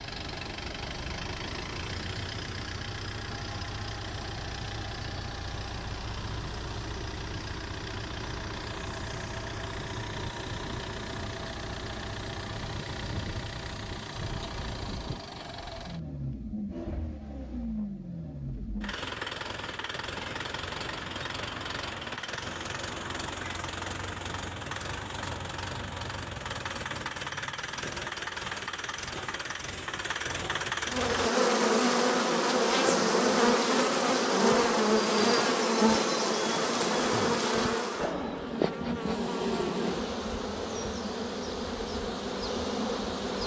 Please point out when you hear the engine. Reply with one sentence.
The engine can be heard from 0.0 to 31.3 s.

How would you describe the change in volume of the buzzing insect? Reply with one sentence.
The loudness of the buzzing insect goes down.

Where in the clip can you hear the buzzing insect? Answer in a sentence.
The buzzing insect can be heard from 30.9 to 43.4 s.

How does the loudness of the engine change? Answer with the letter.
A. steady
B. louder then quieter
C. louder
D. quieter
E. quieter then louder
A.